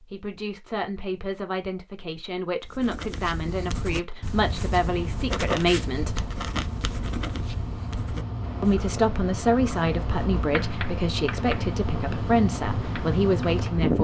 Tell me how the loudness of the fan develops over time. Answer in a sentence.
The volume of the fan goes up.